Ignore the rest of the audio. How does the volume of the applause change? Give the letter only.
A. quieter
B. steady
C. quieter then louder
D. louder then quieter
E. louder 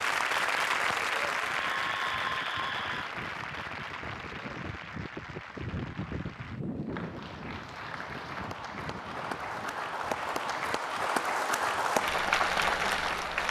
C.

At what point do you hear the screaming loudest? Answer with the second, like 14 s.
2 s.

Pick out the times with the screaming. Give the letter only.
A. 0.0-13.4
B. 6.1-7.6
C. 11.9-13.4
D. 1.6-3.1
D.